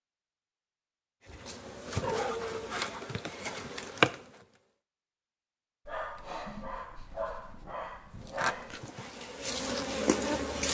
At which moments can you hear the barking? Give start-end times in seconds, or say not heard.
1.2-2.5, 5.8-8.8.